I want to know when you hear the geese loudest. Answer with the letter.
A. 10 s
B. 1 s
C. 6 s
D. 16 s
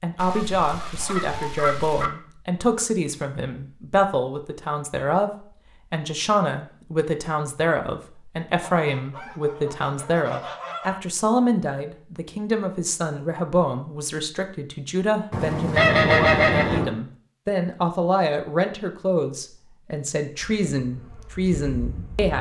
D.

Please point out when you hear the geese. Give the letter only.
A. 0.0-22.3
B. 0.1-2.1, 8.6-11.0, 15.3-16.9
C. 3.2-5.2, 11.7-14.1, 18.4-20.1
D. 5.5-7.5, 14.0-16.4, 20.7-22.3
B.